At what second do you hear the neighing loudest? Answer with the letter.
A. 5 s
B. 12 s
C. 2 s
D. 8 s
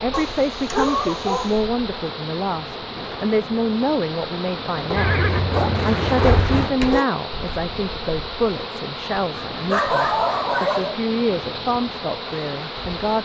A.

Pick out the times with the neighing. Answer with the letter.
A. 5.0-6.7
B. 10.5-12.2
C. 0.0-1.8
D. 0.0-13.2
A.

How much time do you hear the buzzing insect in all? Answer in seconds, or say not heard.
13 s.